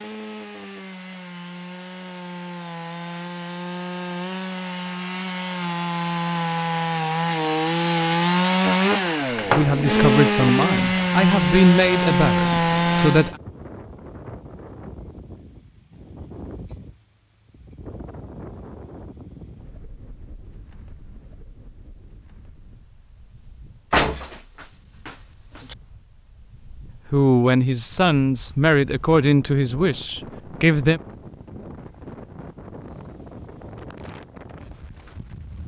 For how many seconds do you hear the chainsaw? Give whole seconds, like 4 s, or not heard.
13 s.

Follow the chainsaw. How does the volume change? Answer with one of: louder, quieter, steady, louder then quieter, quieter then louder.
louder.